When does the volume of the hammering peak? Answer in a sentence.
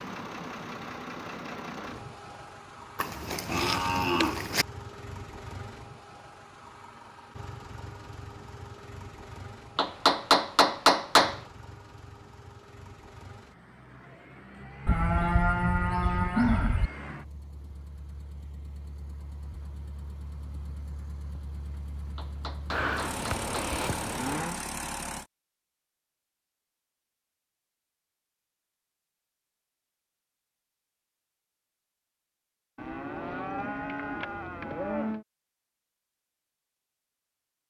The loudest moment of the hammering is at 11 seconds.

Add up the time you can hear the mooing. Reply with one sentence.
You can hear the mooing for 8 seconds altogether.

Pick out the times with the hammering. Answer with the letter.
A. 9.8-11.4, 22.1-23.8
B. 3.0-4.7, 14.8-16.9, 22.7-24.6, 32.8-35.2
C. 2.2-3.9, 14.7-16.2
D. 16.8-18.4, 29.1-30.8
A.